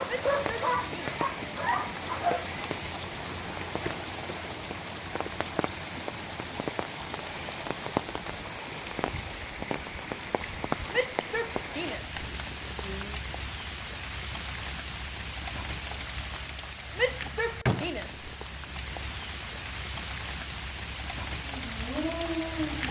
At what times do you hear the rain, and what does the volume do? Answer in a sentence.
The rain can be heard from 0.0 to 22.8 s, at a steady volume.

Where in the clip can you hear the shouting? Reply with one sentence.
You can hear the shouting from 0.1 to 0.9 s, from 10.9 to 13.2 s and from 16.9 to 18.8 s.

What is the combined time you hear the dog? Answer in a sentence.
The dog can be heard for 4 seconds in total.